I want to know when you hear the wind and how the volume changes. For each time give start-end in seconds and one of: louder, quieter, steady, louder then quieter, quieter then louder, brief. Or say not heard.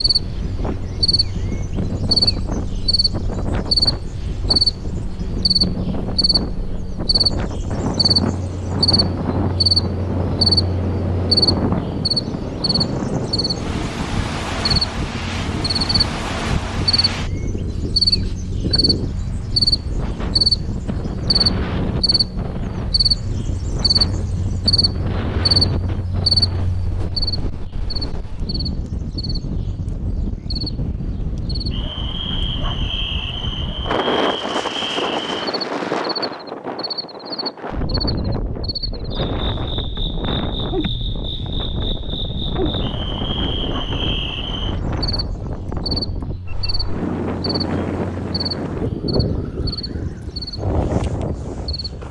0.0-52.0 steady.